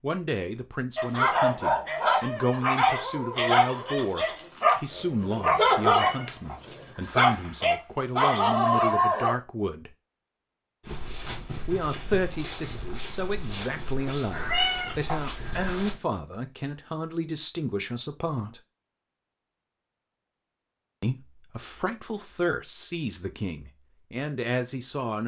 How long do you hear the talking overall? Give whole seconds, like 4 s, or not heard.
21 s.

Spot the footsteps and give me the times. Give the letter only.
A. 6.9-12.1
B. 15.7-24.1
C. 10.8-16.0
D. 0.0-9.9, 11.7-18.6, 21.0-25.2
C.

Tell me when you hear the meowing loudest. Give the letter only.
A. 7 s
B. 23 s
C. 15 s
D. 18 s
C.